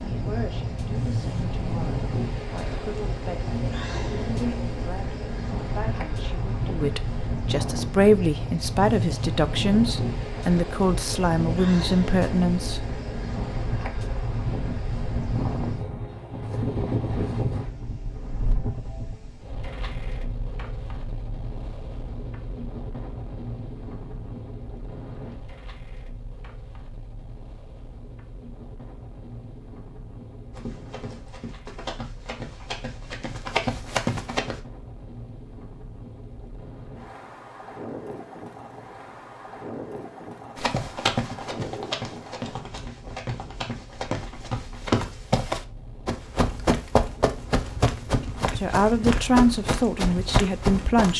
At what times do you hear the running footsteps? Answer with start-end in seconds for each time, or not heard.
30.6-34.6, 40.5-51.1.